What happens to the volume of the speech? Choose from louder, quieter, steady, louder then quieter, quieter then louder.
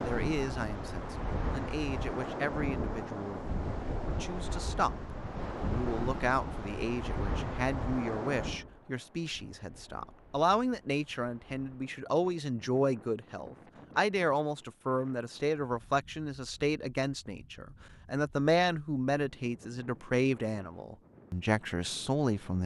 louder.